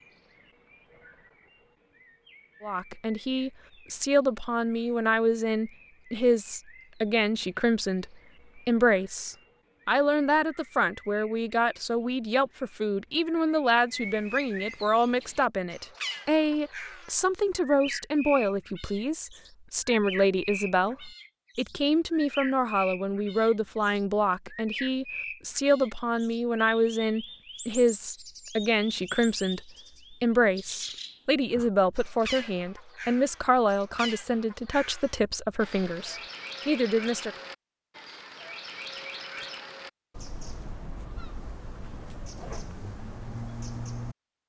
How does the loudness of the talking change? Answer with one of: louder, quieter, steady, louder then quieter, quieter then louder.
steady.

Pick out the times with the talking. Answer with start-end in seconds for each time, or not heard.
2.6-37.3.